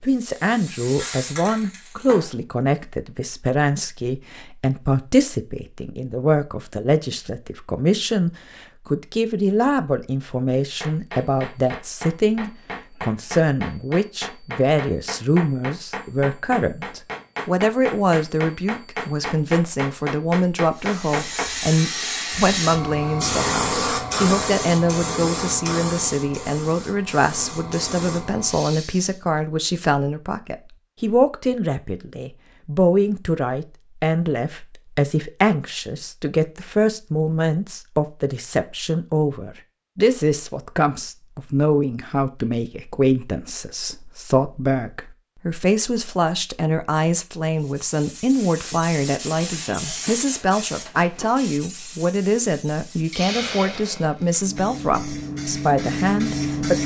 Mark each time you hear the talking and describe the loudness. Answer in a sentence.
The talking can be heard from 0.0 to 56.8 s, at a steady volume.